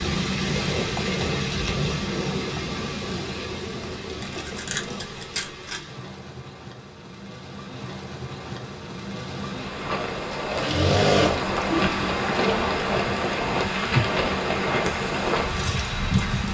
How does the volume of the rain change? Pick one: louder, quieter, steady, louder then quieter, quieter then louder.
quieter then louder.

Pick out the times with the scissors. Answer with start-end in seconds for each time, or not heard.
4.2-5.8.